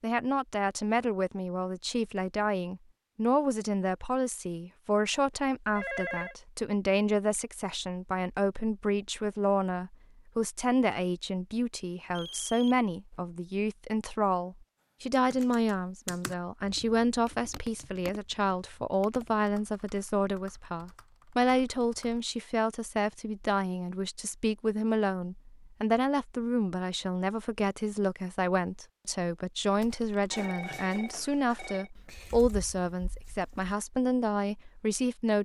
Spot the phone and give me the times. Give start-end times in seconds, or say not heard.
5.8-6.3, 12.2-13.2, 30.3-31.9.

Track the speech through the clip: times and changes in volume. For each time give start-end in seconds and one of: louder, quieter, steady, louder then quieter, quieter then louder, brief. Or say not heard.
0.0-35.3 steady.